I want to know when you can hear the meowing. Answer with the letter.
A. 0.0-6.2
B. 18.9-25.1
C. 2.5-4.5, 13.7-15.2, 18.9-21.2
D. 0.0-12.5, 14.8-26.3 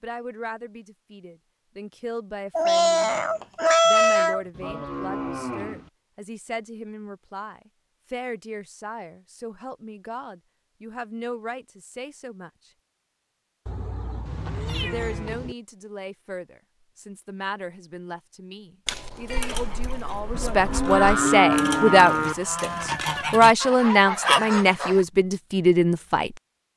C.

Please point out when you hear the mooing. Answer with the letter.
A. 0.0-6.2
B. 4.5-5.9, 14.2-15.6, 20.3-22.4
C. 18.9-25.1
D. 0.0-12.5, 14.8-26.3
B.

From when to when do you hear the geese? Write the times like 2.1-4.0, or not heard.
18.9-25.1.